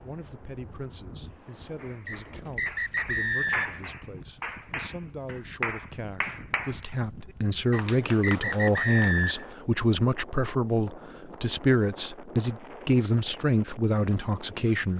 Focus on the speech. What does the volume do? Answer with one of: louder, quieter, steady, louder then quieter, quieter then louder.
louder.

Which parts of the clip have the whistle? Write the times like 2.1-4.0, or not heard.
2.0-3.8, 7.7-9.4.